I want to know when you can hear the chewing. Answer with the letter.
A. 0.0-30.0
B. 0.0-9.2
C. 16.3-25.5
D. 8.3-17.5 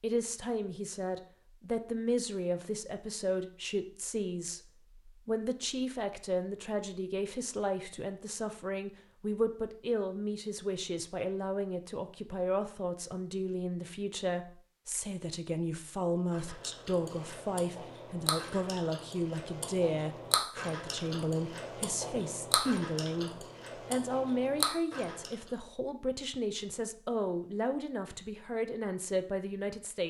C.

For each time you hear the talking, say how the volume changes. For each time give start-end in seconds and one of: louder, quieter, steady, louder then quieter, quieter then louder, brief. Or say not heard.
0.0-30.0 steady.